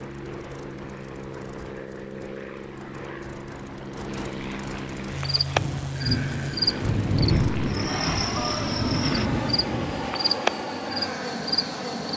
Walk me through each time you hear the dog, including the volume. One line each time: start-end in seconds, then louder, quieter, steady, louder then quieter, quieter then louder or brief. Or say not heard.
not heard.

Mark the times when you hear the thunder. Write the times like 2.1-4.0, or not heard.
5.5-10.2.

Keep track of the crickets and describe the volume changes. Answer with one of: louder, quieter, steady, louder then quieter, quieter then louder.
quieter then louder.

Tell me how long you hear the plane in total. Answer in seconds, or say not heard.
12 s.